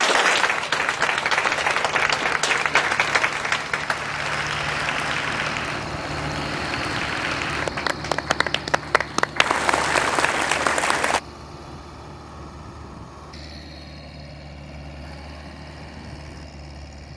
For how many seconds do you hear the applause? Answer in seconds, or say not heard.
11 s.